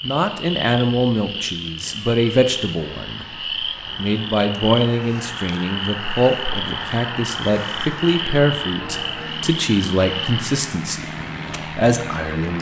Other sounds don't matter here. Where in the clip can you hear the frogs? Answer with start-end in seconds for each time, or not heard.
0.0-10.4.